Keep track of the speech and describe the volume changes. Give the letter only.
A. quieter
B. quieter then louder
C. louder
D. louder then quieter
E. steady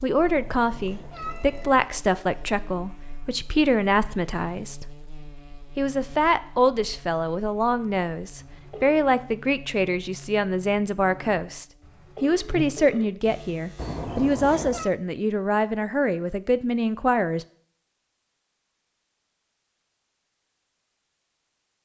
E.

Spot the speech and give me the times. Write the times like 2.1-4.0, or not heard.
0.0-4.9, 5.8-17.4.